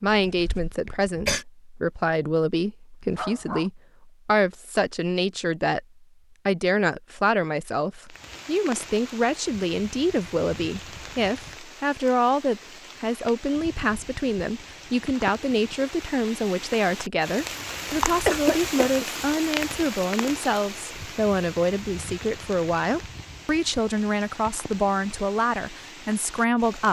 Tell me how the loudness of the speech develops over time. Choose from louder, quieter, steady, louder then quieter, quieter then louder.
steady.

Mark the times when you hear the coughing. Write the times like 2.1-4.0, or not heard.
0.2-1.4, 18.2-19.1.